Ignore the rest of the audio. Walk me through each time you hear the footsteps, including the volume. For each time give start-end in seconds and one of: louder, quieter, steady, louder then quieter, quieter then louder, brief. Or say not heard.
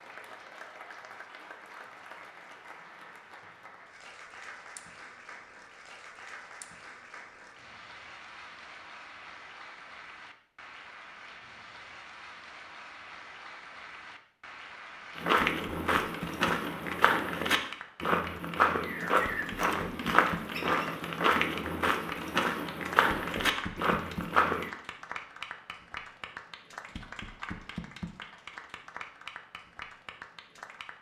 15.2-24.7 steady.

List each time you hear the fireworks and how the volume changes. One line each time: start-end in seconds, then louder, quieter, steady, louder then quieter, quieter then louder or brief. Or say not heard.
not heard.